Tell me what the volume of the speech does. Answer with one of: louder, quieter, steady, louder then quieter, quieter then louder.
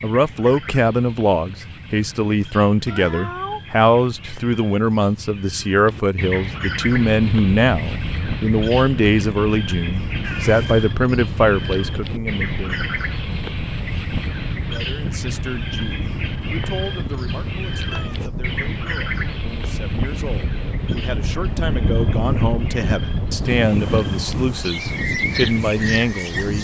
quieter then louder.